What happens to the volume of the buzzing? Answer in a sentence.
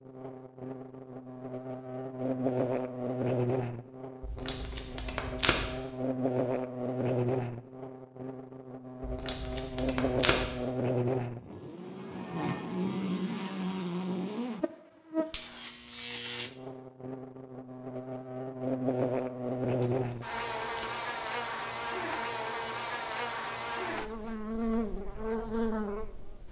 The volume of the buzzing stays about the same.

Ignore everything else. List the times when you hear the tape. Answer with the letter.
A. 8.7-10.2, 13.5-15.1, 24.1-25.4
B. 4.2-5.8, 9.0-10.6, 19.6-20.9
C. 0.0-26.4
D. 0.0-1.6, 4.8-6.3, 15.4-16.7
B.